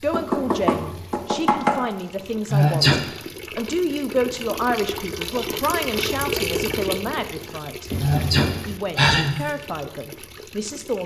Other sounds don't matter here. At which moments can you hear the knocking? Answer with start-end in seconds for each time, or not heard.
0.1-1.8, 7.9-8.7.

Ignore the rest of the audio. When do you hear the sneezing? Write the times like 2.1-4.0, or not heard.
2.5-3.0, 8.0-9.4.